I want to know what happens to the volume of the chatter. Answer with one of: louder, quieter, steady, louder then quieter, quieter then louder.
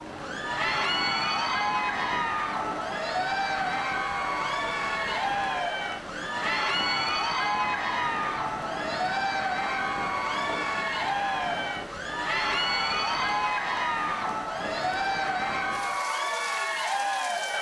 steady.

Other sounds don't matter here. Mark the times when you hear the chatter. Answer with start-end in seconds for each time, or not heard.
0.1-17.5.